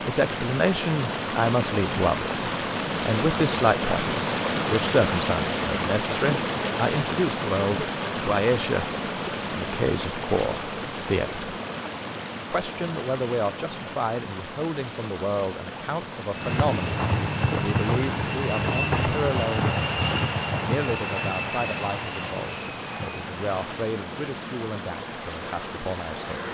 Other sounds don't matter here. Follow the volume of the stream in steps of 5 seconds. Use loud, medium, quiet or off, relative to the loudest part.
loud, loud, medium, medium, medium, medium.